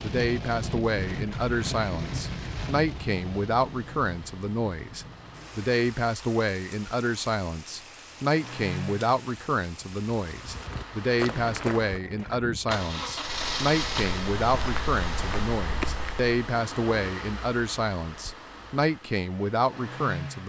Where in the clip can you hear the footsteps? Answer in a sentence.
The footsteps can be heard from 10.4 to 16.3 s.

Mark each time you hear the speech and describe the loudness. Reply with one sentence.
The speech can be heard from 0.0 to 20.4 s, at a steady volume.